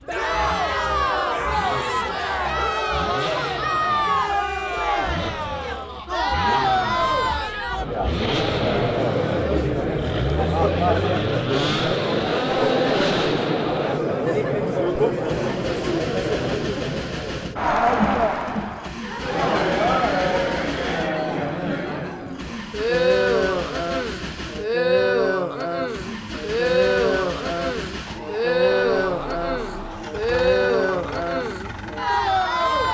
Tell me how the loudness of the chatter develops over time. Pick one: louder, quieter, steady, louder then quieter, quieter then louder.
steady.